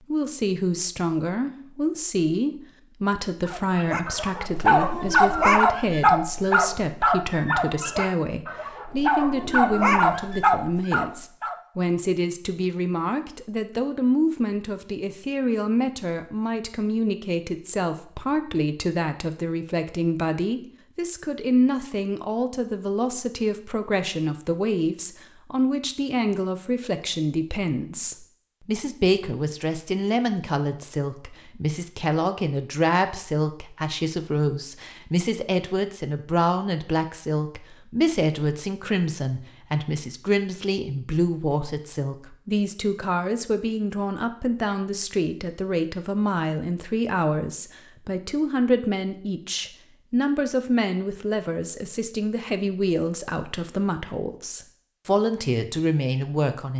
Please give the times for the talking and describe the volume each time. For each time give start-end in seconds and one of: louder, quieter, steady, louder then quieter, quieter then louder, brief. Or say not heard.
0.1-56.7 steady.